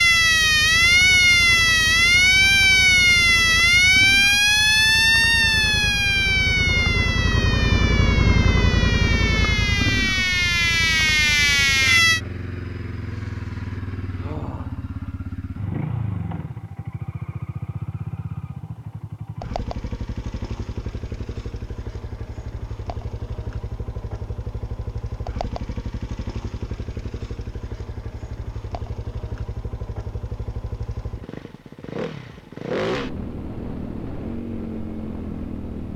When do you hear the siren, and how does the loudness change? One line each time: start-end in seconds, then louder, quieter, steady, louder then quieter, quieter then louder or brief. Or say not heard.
0.0-12.2 quieter then louder.